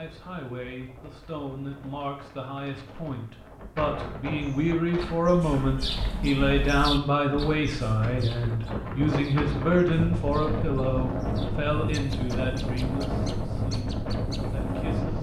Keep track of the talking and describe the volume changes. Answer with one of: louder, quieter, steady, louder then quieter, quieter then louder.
louder then quieter.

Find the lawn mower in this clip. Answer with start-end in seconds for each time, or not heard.
not heard.